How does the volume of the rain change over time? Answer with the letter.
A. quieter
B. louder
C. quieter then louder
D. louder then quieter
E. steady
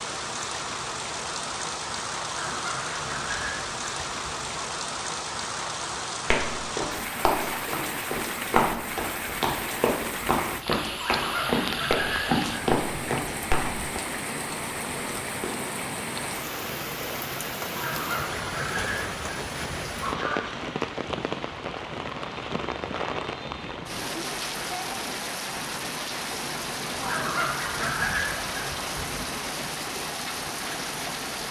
E.